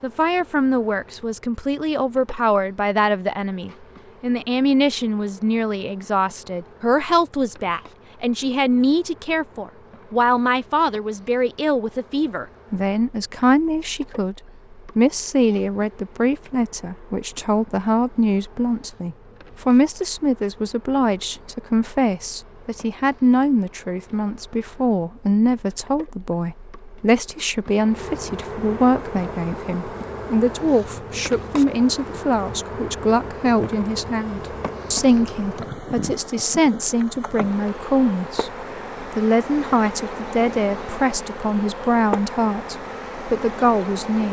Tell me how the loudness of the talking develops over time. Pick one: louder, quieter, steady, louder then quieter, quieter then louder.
steady.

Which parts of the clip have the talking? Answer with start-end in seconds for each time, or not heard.
0.0-44.2.